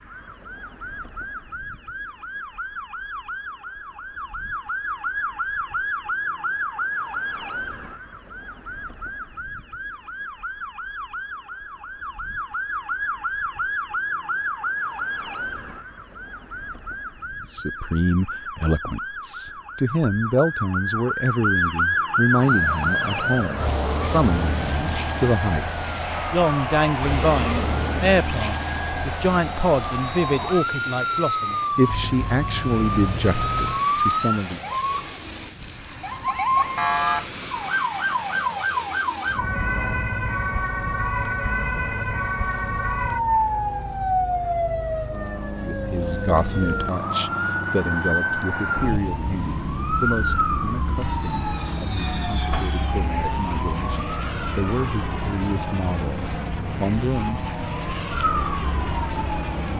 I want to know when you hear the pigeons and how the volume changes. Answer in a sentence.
You can't hear the pigeons here.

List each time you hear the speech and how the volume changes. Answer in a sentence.
The speech can be heard from 17.5 to 34.6 s, at a steady volume; and from 45.6 to 57.4 s, getting quieter then louder.